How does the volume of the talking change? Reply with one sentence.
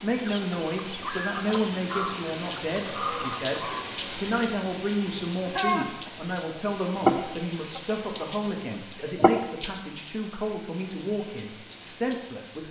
The loudness of the talking stays about the same.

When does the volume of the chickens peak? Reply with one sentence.
The volume of the chickens peaks at 7 seconds.